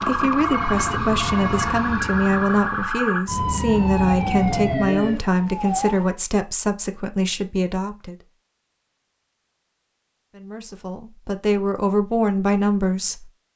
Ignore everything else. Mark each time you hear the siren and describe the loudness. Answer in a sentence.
You can hear the siren from 0.0 to 6.2 s, at a steady volume.